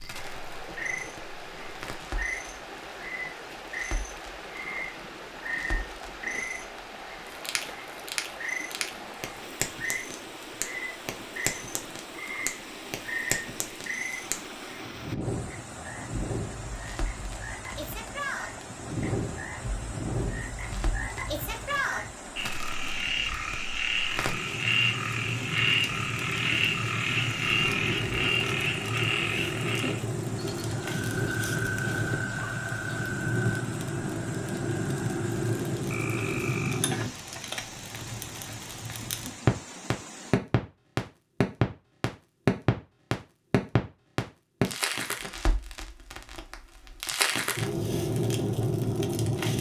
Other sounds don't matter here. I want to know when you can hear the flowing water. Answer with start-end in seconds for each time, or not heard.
0.0-40.4.